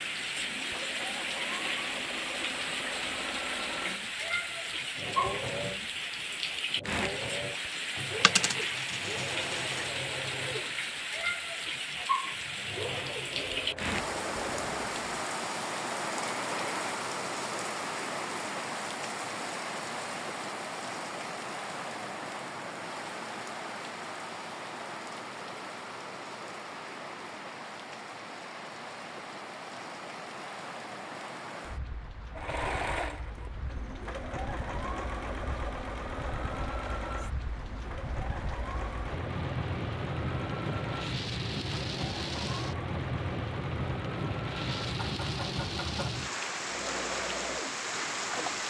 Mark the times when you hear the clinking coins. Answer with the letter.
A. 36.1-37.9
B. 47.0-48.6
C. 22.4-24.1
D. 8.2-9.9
D.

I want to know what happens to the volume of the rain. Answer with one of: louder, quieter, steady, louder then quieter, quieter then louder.
quieter then louder.